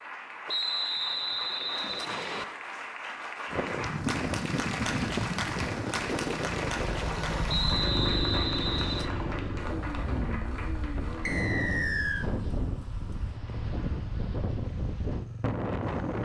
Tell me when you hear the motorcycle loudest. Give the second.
8 s.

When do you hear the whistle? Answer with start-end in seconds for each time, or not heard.
0.5-2.5, 7.5-9.1, 11.2-12.2.